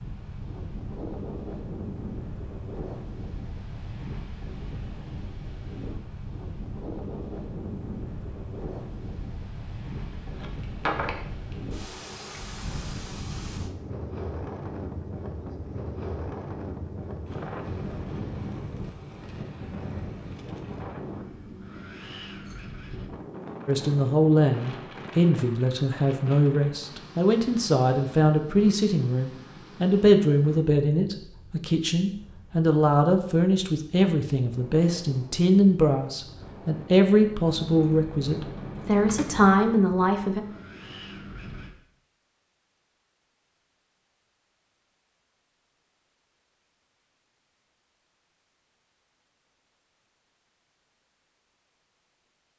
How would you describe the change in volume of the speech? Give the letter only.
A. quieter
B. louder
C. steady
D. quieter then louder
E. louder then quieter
C.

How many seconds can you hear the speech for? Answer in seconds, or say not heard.
17 s.